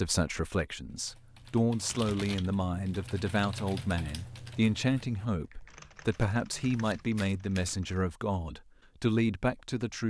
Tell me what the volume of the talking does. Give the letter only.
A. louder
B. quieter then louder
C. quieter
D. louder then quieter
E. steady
E.